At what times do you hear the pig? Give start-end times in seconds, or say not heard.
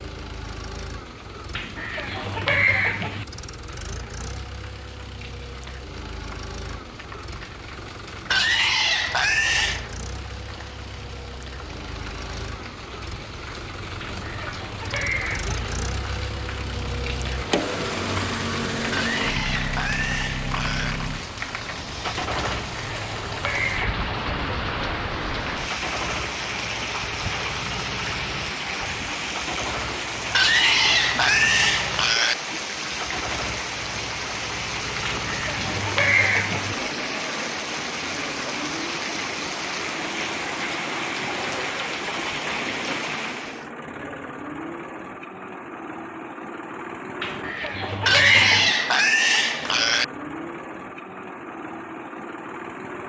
8.3-9.9, 18.9-20.9, 30.3-32.4, 48.0-50.0.